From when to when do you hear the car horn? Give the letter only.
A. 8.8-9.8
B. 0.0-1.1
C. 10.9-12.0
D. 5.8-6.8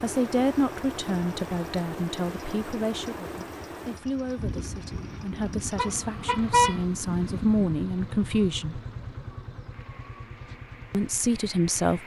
D.